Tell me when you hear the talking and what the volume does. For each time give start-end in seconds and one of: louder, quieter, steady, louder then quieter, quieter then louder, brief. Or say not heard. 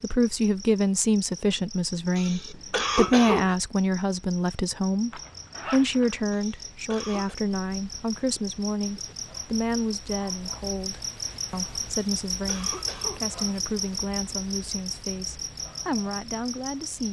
0.0-17.0 quieter.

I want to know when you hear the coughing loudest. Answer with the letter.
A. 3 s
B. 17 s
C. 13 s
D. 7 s
A.